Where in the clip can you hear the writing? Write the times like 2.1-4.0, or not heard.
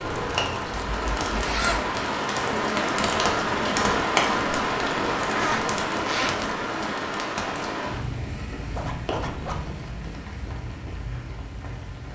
not heard.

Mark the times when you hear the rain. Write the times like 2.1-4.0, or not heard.
0.0-12.1.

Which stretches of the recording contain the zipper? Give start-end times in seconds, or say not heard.
0.7-1.9, 5.2-6.5, 8.8-9.7.